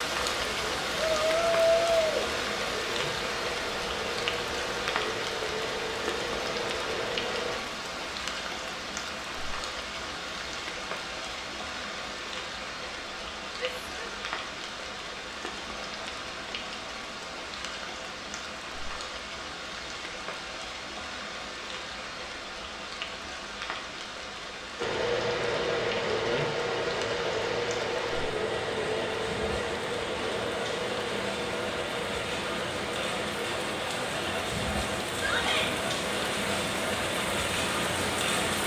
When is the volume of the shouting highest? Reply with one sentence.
The volume of the shouting peaks at 2 seconds.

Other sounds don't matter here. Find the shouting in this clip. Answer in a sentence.
You can hear the shouting from 0.9 to 2.3 s, from 13.6 to 14.2 s and from 35.1 to 35.7 s.